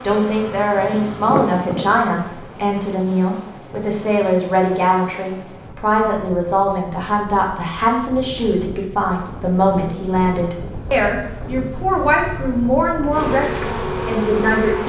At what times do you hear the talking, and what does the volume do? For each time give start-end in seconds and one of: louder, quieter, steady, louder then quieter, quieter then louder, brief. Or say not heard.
0.0-14.8 steady.